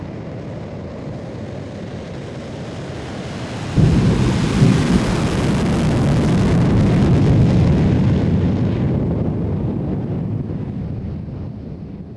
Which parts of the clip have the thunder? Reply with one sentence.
You can hear the thunder from 3.8 to 5.3 s.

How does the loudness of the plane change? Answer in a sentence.
The volume of the plane goes up, then down.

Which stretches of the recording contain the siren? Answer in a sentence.
You can't hear the siren here.